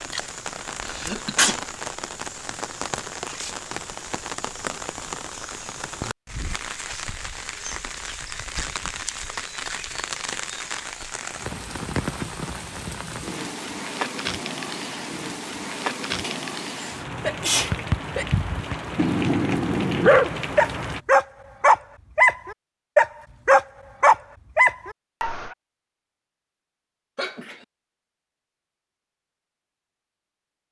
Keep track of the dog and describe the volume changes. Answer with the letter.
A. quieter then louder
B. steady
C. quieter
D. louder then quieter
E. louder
E.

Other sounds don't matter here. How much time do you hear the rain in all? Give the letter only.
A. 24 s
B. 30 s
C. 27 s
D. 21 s
D.